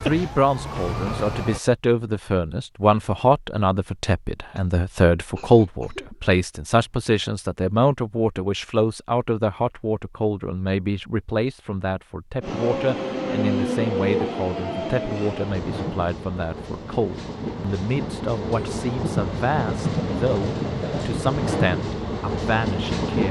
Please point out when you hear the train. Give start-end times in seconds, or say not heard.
12.4-23.2.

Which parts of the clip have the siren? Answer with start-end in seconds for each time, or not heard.
0.0-1.6.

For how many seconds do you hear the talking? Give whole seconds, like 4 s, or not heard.
23 s.